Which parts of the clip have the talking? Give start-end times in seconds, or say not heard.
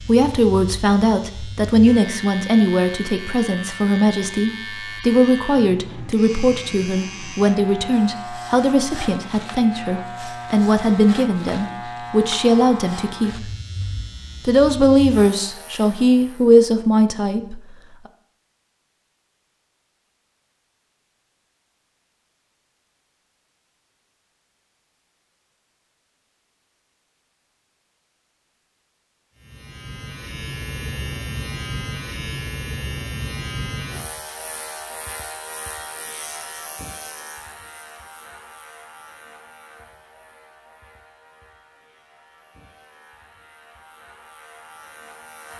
0.0-13.5, 14.4-17.6.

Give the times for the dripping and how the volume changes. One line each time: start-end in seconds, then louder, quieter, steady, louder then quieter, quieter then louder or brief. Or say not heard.
not heard.